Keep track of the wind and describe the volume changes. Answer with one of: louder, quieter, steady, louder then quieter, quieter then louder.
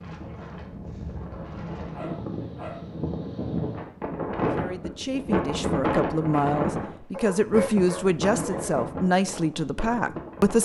louder then quieter.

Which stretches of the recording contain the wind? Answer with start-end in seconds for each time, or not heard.
0.0-10.6.